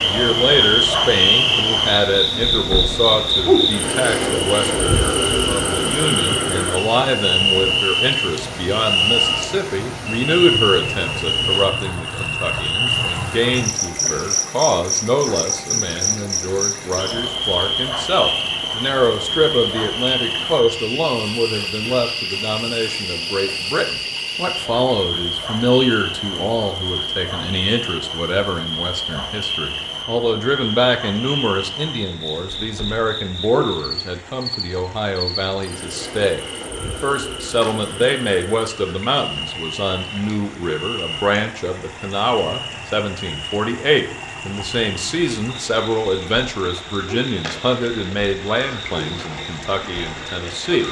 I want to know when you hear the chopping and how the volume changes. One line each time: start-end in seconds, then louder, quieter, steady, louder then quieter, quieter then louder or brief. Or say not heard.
not heard.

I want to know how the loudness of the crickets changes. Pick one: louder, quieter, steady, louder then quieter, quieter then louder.
quieter.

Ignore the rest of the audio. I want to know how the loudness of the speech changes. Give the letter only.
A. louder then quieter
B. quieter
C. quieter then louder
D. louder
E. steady
E.